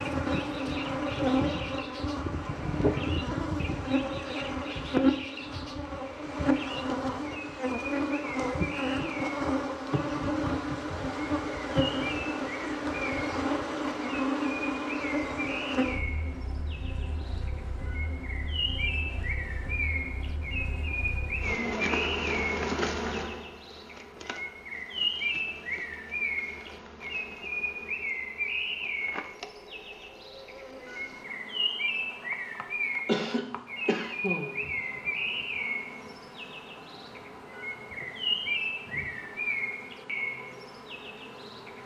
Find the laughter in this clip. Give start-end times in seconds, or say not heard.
33.0-34.6.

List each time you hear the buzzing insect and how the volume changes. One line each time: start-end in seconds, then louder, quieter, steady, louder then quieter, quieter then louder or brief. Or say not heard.
0.0-41.8 quieter.